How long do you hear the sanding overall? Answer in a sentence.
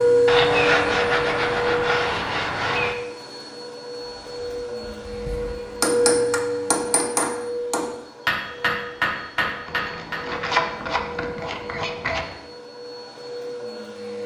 You can hear the sanding for 5 seconds altogether.